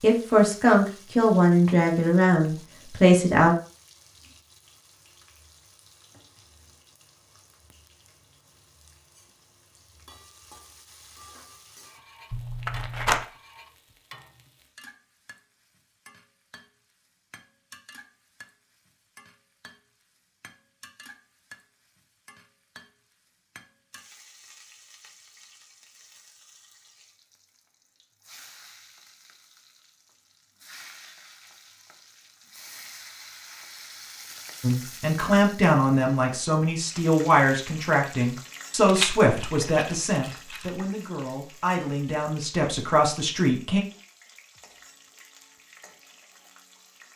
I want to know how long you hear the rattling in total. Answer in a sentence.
The rattling can be heard for 3 seconds in total.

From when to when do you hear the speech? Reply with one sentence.
The speech can be heard from 0.0 to 3.5 s and from 34.6 to 43.8 s.